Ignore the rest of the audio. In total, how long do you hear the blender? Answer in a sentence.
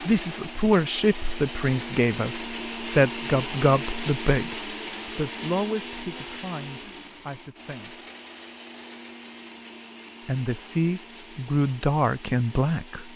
You can hear the blender for 13 seconds altogether.